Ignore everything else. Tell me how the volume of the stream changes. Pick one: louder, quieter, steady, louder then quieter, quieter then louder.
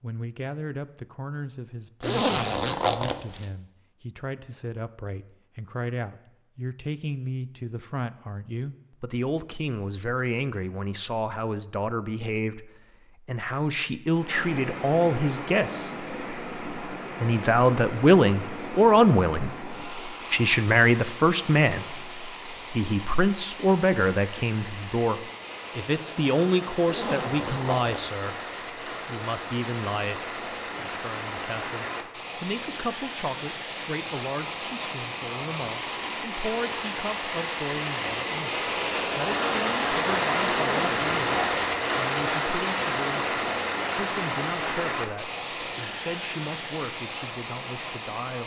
louder.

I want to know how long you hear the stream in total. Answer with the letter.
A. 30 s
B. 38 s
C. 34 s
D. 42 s
C.